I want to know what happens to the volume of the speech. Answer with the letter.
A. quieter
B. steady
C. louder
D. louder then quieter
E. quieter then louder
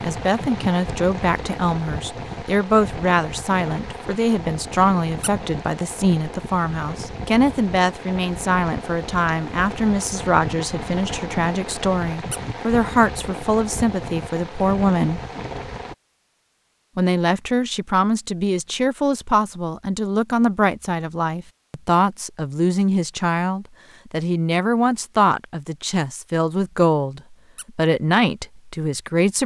B.